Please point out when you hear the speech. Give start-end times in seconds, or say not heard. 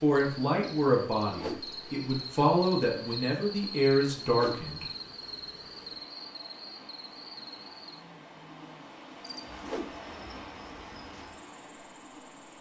0.0-4.8.